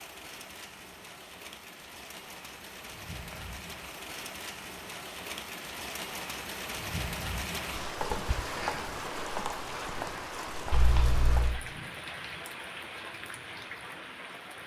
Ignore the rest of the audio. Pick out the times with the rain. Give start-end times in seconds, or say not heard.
0.0-14.6.